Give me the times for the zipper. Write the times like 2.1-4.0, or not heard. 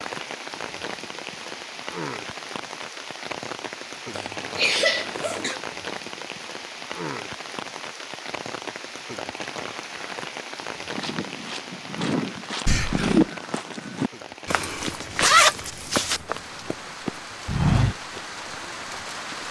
4.4-5.5, 14.4-16.2.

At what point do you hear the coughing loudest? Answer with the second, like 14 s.
5 s.